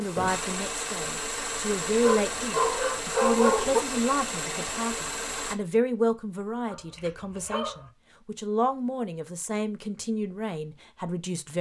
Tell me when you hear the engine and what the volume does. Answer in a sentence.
The engine can be heard from 0.0 to 5.5 s, at a steady volume.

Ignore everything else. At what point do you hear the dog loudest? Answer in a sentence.
The loudest moment of the dog is at 3 seconds.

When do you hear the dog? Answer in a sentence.
The dog can be heard from 1.9 to 3.8 s and from 6.7 to 7.9 s.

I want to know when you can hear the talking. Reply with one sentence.
The talking can be heard from 0.0 to 11.5 s.